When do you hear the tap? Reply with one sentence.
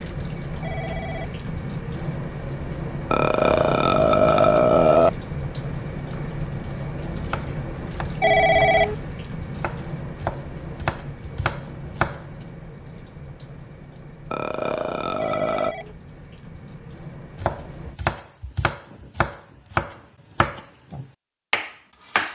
You can hear the tap from 0.0 to 18.0 s.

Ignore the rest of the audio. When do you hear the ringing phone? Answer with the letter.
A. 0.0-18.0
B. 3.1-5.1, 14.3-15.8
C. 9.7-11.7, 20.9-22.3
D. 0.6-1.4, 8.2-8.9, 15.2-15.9
D.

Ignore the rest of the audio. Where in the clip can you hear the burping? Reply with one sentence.
The burping can be heard from 3.1 to 5.1 s and from 14.3 to 15.8 s.